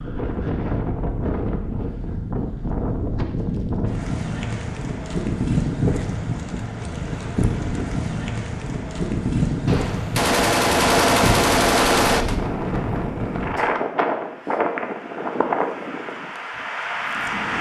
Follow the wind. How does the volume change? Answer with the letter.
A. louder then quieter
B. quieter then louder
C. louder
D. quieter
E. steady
E.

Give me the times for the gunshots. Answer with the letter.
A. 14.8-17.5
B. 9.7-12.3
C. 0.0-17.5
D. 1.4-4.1
B.